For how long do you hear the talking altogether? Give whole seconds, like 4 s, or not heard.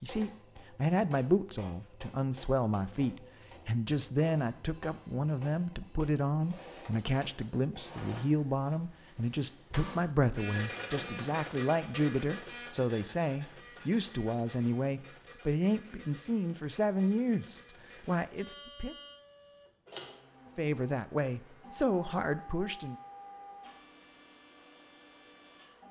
21 s.